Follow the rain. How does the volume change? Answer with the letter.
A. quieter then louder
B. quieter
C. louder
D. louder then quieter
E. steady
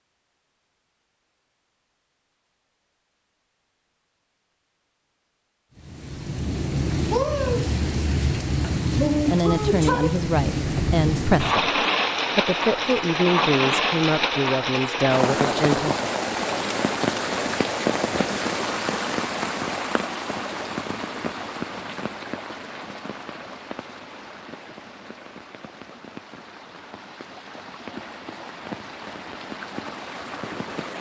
B.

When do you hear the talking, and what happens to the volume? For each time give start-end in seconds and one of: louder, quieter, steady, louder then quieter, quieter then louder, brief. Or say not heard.
9.2-15.9 steady.